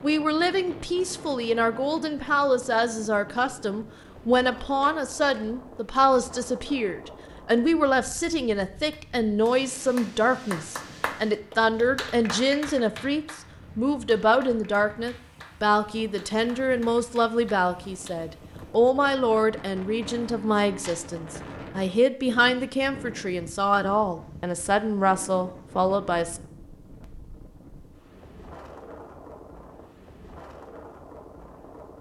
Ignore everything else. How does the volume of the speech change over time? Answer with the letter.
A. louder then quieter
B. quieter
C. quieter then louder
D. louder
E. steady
E.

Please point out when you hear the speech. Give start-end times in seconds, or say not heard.
0.0-26.4.